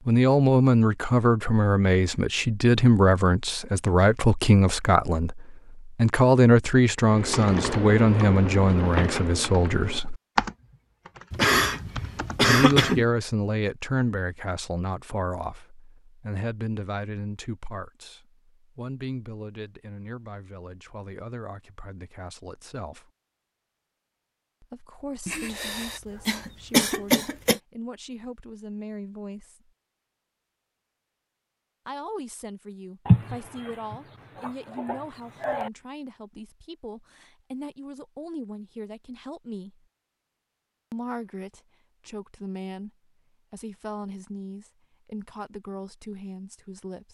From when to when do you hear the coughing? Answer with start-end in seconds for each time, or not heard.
11.3-13.1, 25.2-27.6, 33.0-35.7.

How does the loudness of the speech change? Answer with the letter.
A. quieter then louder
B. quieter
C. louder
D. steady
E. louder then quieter
B.